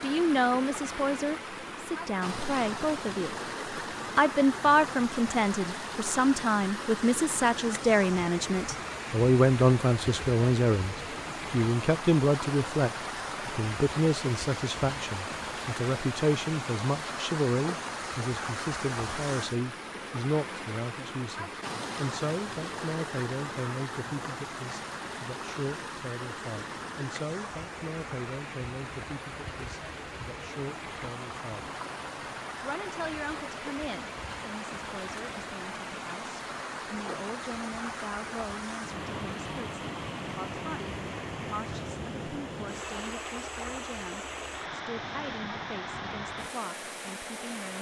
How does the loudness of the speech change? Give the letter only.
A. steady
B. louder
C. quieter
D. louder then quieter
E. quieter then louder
C.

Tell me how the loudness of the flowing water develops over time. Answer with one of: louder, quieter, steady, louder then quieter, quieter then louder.
steady.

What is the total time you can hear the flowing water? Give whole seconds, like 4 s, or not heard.
48 s.